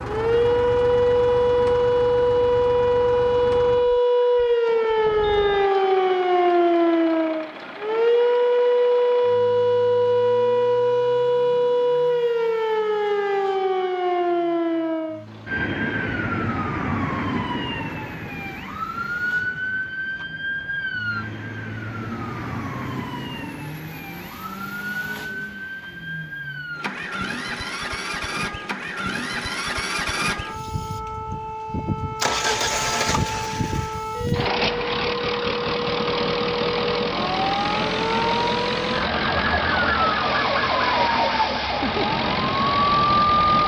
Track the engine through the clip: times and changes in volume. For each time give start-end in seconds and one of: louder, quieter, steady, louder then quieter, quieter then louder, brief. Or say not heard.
0.0-43.6 quieter then louder.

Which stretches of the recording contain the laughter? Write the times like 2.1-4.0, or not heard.
not heard.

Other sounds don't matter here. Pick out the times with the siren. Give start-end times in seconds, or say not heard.
0.0-43.6.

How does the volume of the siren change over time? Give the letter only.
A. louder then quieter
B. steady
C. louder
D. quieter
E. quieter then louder
E.